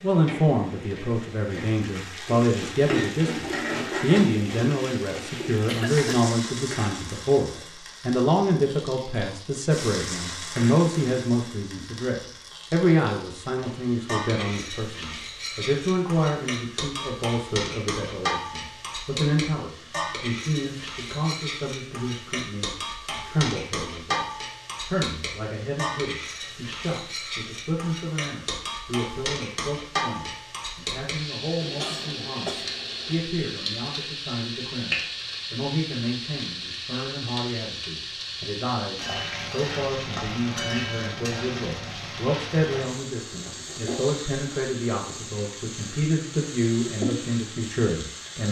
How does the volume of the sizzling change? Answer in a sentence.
The volume of the sizzling stays about the same.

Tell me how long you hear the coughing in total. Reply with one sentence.
The coughing can be heard for 2 seconds in total.